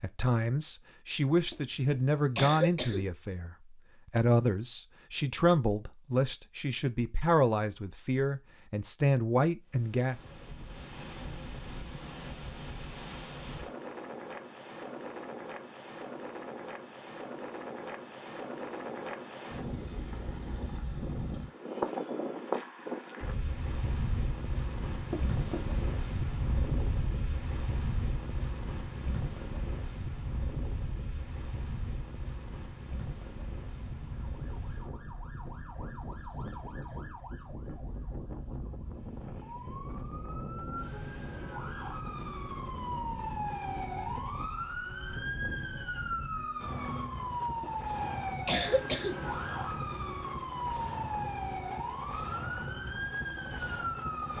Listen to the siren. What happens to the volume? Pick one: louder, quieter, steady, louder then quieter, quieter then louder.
louder.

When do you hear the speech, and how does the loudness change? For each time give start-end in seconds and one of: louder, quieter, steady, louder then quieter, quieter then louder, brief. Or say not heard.
0.0-10.2 steady.